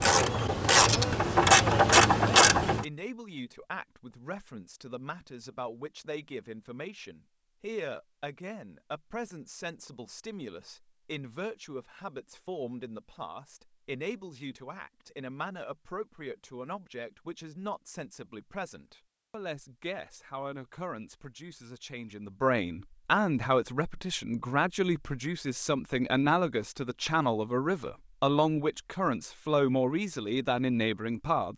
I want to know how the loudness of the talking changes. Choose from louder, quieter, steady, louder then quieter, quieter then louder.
louder.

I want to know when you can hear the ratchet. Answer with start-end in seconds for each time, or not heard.
0.0-2.9.